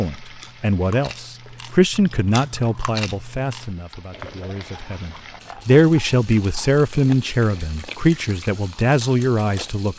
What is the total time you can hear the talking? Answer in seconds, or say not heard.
10 s.